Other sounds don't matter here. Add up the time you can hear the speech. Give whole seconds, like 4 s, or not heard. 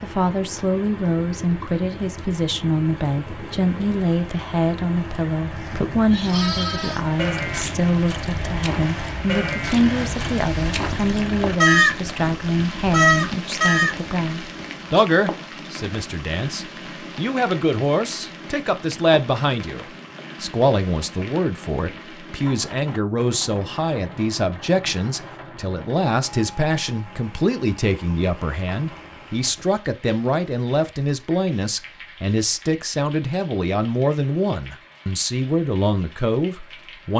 37 s.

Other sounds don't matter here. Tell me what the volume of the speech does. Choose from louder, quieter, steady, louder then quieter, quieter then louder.
steady.